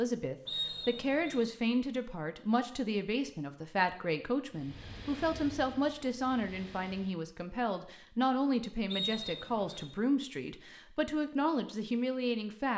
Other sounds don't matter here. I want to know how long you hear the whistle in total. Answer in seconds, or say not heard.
2 s.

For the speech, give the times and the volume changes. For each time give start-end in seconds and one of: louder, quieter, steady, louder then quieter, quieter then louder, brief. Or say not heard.
0.0-12.7 steady.